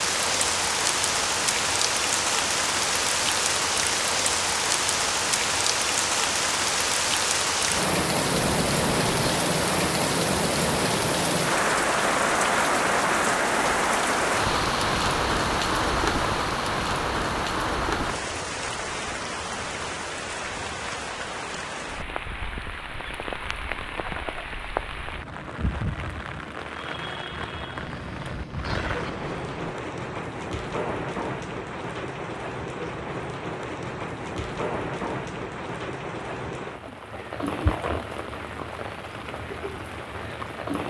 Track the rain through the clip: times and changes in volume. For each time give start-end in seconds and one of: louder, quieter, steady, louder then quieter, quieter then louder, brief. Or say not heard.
0.0-40.8 quieter.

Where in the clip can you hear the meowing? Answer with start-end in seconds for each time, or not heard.
8.3-9.2, 27.7-29.8.